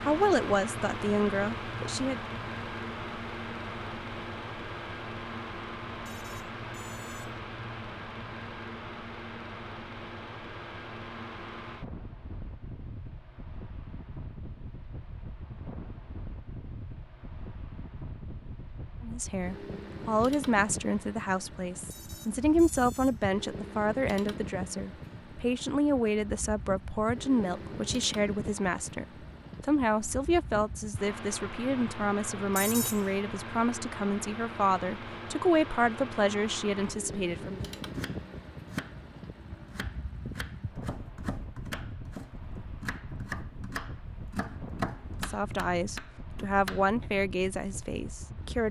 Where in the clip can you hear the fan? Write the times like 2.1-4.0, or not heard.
0.0-48.6.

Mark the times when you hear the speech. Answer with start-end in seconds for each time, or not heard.
0.0-2.2, 19.0-37.6, 45.2-48.6.